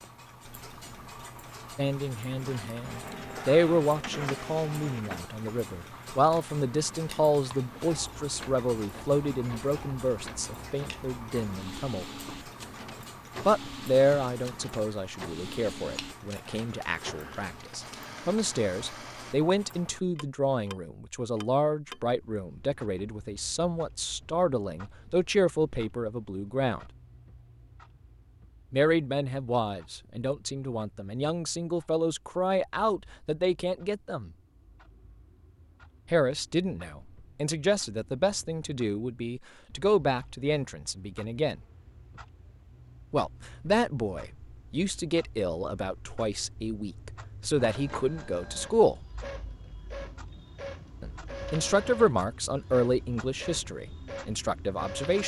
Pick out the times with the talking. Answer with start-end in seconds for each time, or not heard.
1.8-12.1, 13.4-26.8, 28.7-34.3, 36.1-41.6, 43.1-49.0, 51.0-55.2.